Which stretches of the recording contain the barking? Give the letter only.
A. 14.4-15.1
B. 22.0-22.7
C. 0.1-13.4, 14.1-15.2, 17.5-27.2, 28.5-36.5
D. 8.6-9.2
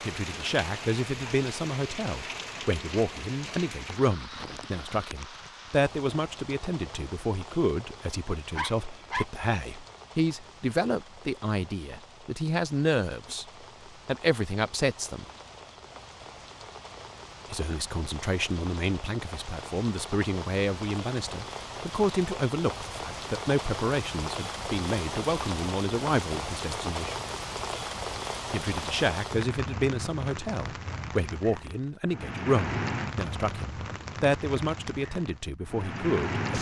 D.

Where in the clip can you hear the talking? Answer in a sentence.
The talking can be heard from 0.1 to 13.4 s, from 14.1 to 15.2 s, from 17.5 to 27.2 s and from 28.5 to 36.5 s.